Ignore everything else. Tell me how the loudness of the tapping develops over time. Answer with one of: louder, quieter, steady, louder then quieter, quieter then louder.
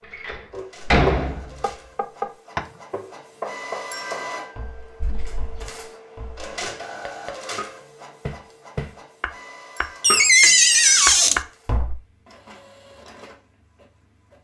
quieter then louder.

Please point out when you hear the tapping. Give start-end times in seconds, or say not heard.
0.5-12.0.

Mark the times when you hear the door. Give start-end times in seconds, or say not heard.
0.1-1.6, 5.0-5.7, 10.0-11.4.